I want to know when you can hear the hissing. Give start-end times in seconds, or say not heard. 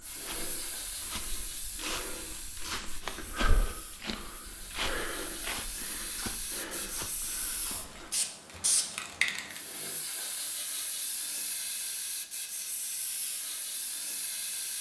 0.0-14.7.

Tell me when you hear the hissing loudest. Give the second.
9 s.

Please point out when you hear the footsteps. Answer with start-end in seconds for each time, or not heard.
0.0-8.1.